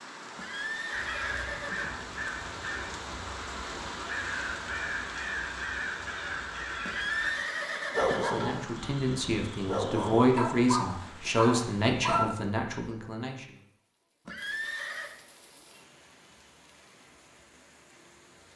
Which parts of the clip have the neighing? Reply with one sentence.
The neighing can be heard from 0.3 to 2.0 s, from 6.8 to 8.7 s and from 14.2 to 15.2 s.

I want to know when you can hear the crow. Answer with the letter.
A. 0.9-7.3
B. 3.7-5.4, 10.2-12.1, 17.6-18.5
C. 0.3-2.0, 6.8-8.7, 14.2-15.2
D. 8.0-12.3
A.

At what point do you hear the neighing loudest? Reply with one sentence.
The loudest moment of the neighing is at 7 seconds.